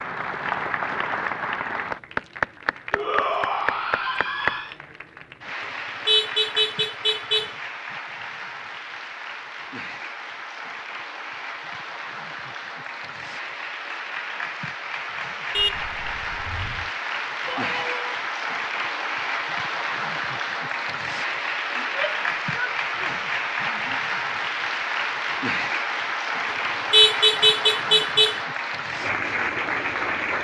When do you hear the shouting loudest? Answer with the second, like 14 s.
3 s.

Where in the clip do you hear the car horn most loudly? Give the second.
27 s.